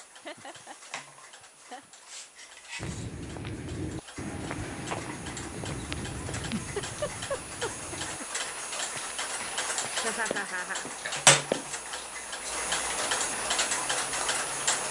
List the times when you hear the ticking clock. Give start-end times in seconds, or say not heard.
0.0-14.8.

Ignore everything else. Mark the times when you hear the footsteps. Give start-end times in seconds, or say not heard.
2.8-11.7.